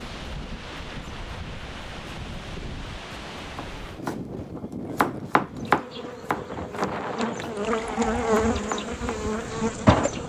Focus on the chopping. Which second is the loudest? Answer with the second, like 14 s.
6 s.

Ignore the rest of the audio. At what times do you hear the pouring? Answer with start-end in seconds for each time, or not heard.
7.5-8.4.